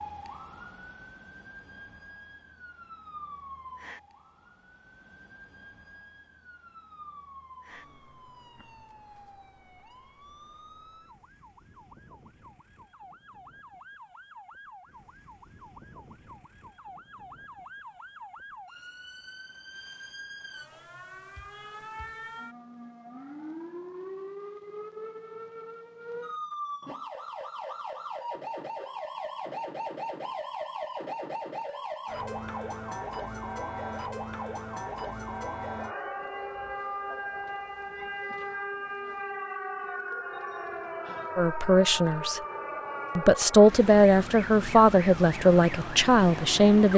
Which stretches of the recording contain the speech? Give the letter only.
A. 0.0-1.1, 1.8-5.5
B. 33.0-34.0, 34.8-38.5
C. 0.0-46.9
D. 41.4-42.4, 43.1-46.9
D.